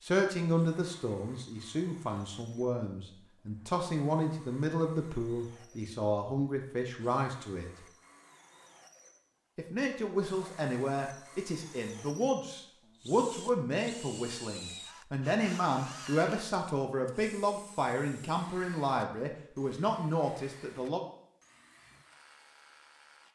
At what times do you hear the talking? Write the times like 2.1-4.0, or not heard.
0.0-7.7, 9.6-21.0.